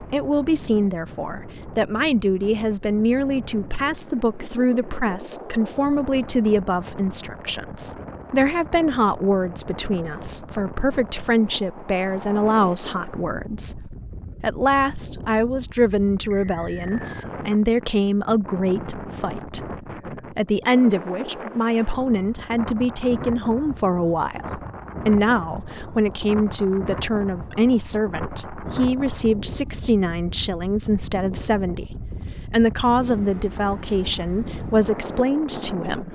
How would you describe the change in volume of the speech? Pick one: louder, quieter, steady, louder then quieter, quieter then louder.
steady.